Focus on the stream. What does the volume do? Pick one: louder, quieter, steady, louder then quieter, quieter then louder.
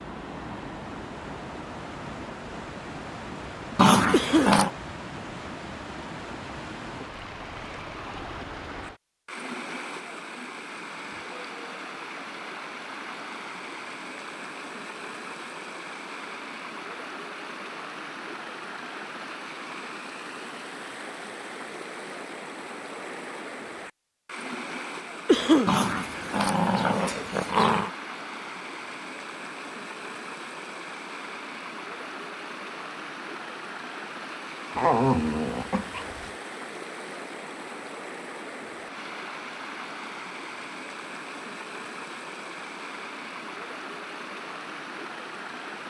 steady.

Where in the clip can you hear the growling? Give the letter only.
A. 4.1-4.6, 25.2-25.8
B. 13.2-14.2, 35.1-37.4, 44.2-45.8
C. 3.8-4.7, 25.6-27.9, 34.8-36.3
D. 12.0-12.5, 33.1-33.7
C.